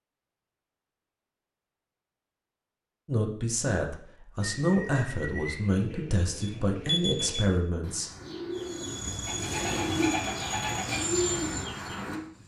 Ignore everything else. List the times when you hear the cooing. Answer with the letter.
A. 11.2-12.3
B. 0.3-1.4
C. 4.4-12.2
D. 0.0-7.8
C.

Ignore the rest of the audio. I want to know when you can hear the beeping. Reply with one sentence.
You can hear the beeping from 6.4 to 7.5 s.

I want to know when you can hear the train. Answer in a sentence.
The train can be heard from 8.6 to 12.4 s.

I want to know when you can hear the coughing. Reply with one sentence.
The coughing can't be heard in this clip.